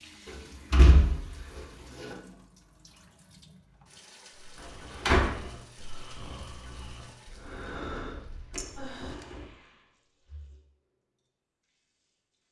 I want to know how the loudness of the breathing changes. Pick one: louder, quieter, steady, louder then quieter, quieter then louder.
louder then quieter.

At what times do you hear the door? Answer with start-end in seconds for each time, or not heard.
0.2-2.1, 4.6-5.5, 8.5-9.4.